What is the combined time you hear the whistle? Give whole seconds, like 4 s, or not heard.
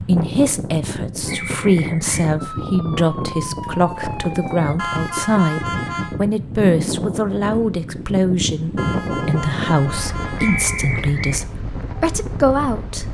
2 s.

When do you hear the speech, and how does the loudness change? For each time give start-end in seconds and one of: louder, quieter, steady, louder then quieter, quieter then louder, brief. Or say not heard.
0.0-13.0 steady.